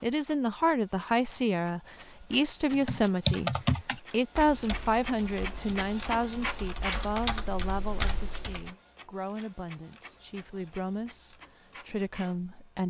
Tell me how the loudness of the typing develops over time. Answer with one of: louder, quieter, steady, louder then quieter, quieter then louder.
quieter then louder.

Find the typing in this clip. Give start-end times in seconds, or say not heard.
2.7-8.7.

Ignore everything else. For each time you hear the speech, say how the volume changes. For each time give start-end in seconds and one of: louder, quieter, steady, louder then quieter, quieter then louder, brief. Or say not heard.
0.0-12.8 quieter.